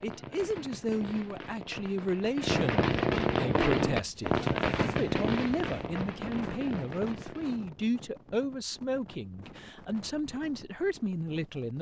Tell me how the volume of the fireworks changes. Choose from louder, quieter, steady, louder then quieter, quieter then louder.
louder then quieter.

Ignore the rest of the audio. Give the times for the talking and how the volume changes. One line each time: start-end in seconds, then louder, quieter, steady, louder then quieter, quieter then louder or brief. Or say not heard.
0.0-11.7 steady.